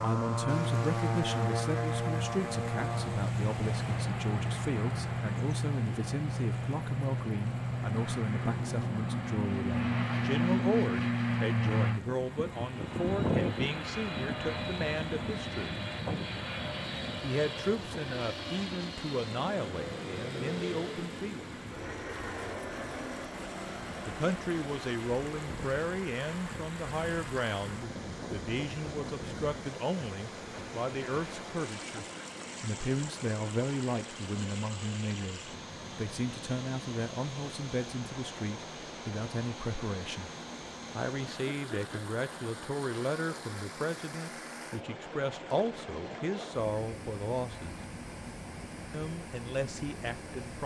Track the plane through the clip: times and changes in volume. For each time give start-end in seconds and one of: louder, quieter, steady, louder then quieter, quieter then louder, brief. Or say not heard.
0.0-50.6 quieter.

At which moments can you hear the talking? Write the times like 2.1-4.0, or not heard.
0.0-15.8, 17.2-21.6, 24.1-40.3, 41.0-47.8, 48.9-50.6.